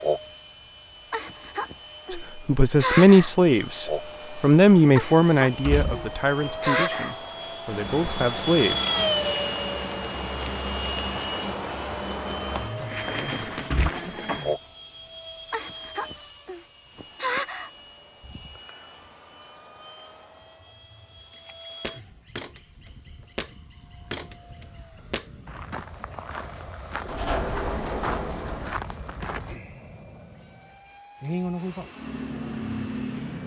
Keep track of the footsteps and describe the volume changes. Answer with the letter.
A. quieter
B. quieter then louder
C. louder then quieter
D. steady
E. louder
D.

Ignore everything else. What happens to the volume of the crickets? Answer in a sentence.
The volume of the crickets goes down, then up.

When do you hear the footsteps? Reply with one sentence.
You can hear the footsteps from 21.3 to 29.6 s.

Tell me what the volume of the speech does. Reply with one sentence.
The volume of the speech goes down.